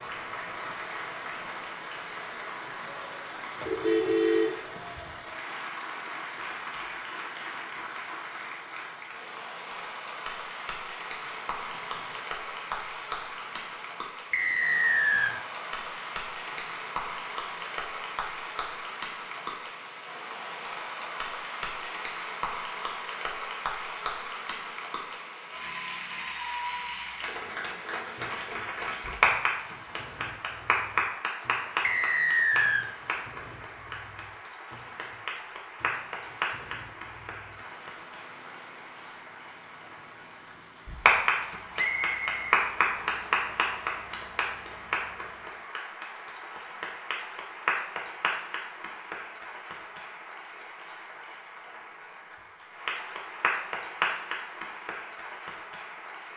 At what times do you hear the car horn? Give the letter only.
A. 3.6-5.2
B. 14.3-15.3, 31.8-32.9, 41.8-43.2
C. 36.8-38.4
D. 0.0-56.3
A.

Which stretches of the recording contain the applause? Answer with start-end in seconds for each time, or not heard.
0.0-56.3.